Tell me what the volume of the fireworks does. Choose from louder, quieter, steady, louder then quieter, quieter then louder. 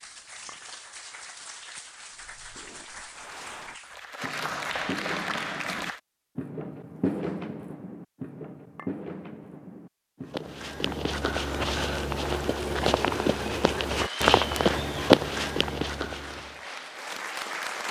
louder then quieter.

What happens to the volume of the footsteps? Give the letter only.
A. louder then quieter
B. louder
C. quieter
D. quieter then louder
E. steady
B.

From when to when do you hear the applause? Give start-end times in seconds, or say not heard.
0.0-6.0, 13.9-17.8.